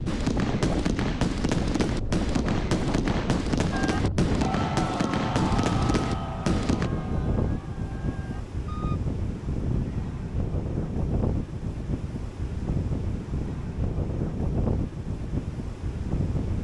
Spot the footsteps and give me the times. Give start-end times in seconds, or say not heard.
not heard.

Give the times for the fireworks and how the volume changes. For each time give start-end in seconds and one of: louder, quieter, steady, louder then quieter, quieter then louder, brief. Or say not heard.
0.1-6.9 steady.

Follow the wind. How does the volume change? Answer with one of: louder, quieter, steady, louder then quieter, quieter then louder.
steady.